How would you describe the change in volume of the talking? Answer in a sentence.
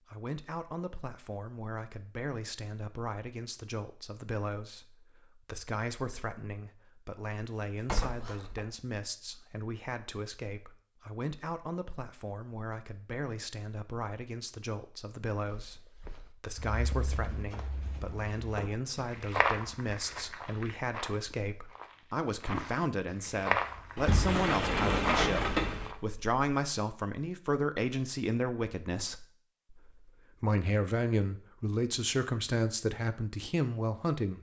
The volume of the talking goes up.